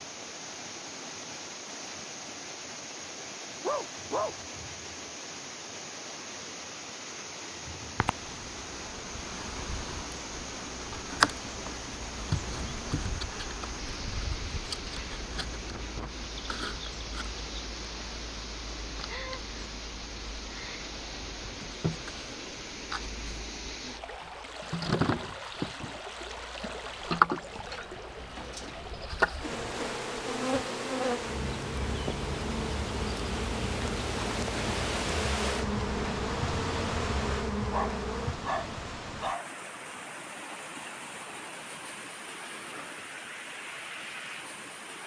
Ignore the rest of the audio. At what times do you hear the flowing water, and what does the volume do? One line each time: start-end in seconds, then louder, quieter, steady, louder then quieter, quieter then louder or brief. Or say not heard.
0.0-45.0 steady.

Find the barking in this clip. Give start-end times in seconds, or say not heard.
3.6-4.3, 37.6-39.6.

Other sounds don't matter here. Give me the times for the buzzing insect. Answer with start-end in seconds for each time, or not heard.
8.0-38.4.